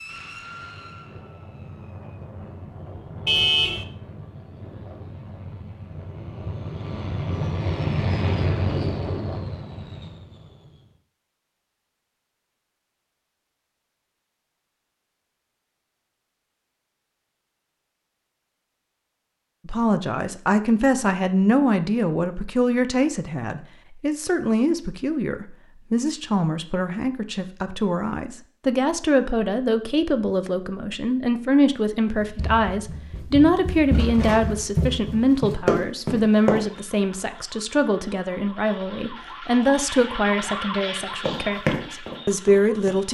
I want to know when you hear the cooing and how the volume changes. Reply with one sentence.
The cooing can't be heard in this clip.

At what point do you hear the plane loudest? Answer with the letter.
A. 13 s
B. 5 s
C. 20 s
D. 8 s
D.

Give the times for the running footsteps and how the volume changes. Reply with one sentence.
You can hear the running footsteps from 32.1 to 36.6 s, getting louder; and briefly from 41.2 to 43.0 s.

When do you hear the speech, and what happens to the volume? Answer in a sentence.
The speech can be heard from 19.6 to 43.1 s, at a steady volume.